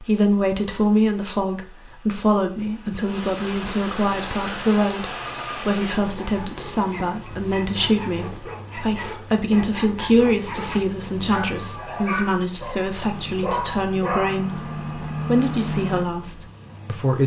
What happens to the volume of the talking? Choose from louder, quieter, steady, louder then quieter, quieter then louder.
steady.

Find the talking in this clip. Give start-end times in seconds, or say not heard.
0.0-17.2.